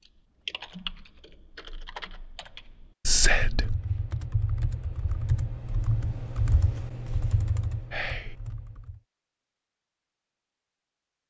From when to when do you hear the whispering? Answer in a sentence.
The whispering can be heard from 3.0 to 3.8 s and from 7.9 to 8.3 s.